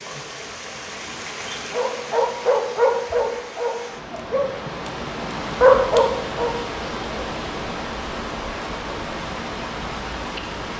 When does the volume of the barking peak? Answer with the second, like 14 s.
6 s.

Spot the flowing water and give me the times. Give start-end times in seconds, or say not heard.
0.0-10.7.